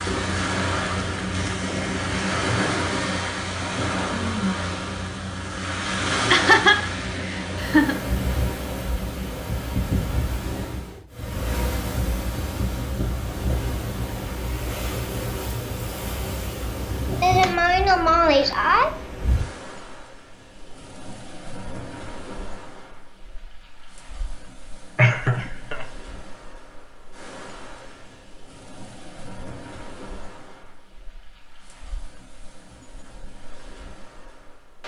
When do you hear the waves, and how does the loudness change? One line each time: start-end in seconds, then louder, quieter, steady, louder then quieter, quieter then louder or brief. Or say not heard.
0.0-34.8 quieter.